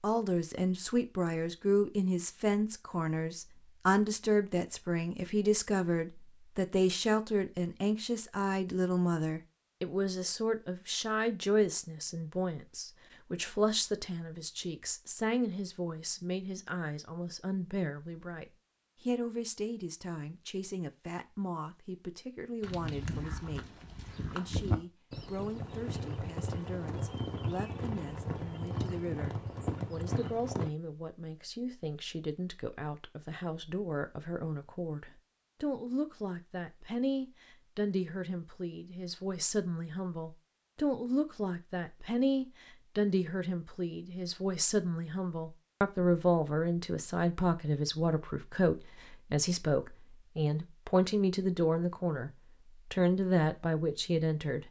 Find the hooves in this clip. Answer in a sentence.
You can hear the hooves from 22.6 to 30.7 s.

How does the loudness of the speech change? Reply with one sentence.
The loudness of the speech goes down, then up.